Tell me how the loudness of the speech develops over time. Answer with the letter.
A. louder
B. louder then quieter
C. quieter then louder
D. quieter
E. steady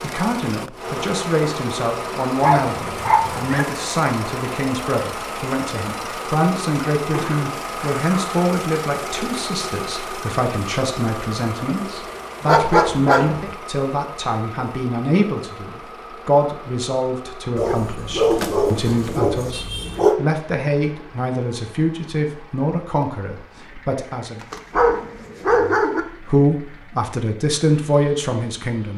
E.